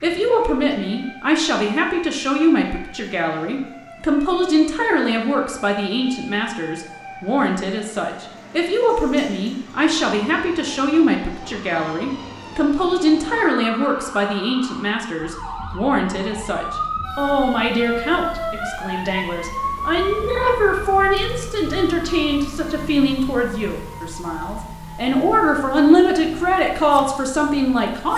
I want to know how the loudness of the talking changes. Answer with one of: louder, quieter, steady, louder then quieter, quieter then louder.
steady.